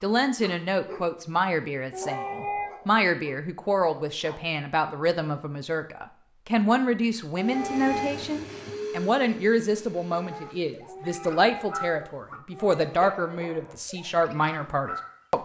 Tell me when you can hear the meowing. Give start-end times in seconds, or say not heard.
1.9-2.7, 7.3-8.2, 10.8-12.8.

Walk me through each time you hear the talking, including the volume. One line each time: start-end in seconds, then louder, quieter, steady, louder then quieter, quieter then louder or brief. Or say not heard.
0.0-15.4 steady.